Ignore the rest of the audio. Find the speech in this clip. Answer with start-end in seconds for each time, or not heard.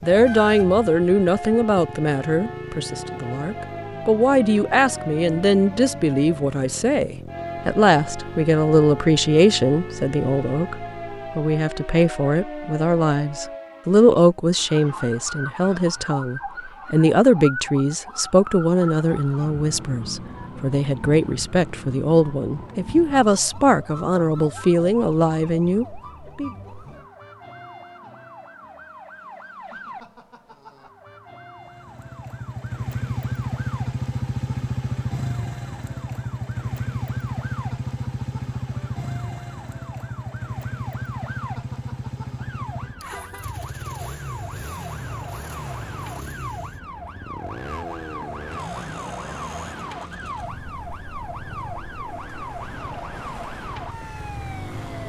0.0-26.5.